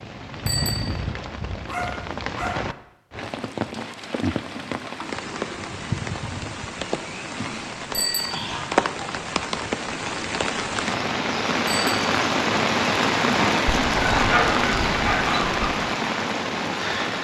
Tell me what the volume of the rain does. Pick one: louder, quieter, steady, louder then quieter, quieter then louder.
louder.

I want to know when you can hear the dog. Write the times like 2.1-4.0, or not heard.
1.6-2.7, 7.3-8.8, 13.9-15.7.